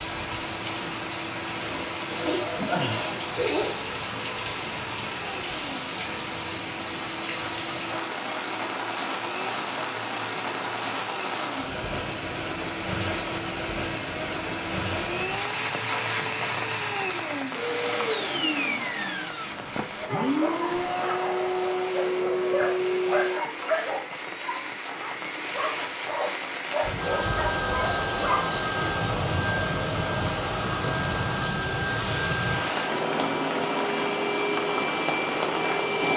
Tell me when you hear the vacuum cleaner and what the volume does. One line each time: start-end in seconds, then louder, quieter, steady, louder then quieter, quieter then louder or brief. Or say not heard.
0.0-36.1 louder.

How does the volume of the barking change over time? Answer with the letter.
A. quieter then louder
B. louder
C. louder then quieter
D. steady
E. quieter
D.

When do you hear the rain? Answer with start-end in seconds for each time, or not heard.
0.0-36.1.